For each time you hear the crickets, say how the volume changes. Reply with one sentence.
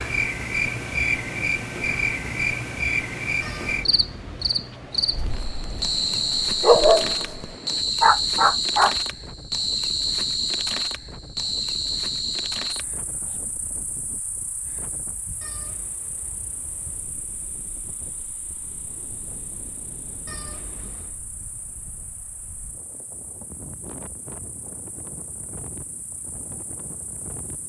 The crickets can be heard from 0.0 to 27.6 s, getting quieter.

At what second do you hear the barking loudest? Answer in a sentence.
The volume of the barking peaks at 7 seconds.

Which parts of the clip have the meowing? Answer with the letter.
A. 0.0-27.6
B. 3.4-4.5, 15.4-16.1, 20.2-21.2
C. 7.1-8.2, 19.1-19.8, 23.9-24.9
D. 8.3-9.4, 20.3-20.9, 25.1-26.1
B.